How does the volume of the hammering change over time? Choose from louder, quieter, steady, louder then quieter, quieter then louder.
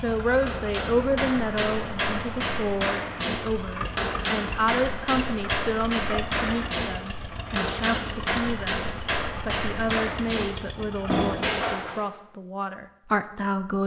steady.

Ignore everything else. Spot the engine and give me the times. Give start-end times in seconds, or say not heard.
0.0-11.8.